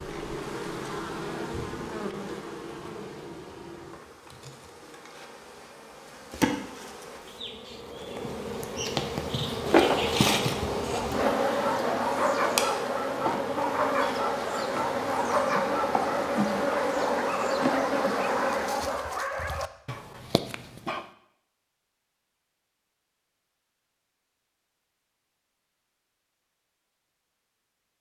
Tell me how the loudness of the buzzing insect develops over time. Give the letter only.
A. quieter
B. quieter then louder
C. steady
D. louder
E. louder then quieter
D.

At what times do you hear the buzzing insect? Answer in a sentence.
The buzzing insect can be heard from 0.0 to 19.1 s.